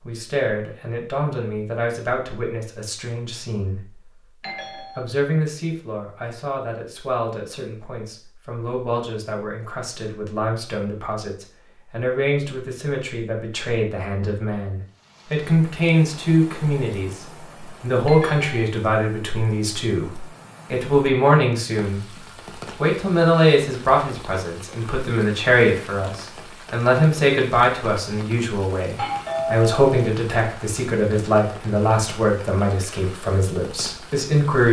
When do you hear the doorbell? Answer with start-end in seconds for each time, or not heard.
4.4-5.0, 18.1-18.6, 28.9-30.1.